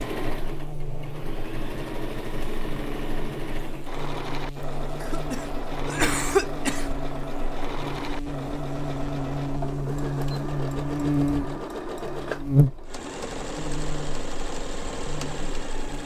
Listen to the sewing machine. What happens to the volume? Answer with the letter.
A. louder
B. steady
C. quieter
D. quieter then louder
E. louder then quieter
B.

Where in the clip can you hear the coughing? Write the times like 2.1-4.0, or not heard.
5.0-7.0.